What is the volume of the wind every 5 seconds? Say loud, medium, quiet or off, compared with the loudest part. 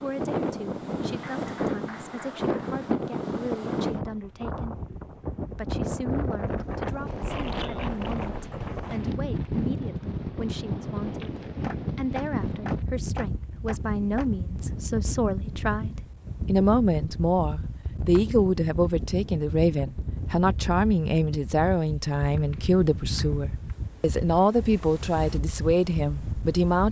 loud, loud, loud, medium, medium, medium.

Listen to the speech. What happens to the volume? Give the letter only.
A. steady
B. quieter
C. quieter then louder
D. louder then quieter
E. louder
E.